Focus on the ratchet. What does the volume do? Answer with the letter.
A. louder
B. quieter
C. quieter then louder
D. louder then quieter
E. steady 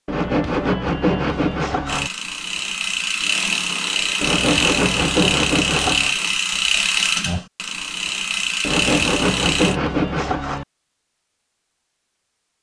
E.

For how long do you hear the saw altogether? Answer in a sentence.
You can hear the saw for 6 seconds altogether.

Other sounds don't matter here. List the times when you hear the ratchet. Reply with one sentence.
You can hear the ratchet from 1.9 to 9.8 s.